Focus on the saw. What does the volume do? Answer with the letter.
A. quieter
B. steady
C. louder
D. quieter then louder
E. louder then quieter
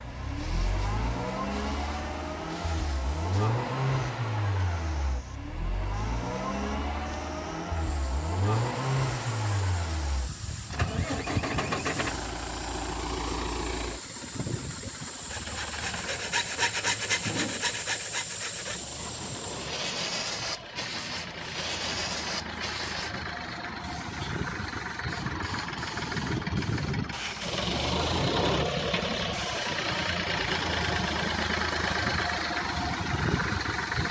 A.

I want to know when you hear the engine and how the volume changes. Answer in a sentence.
The engine can be heard from 0.0 to 34.0 s, getting quieter then louder.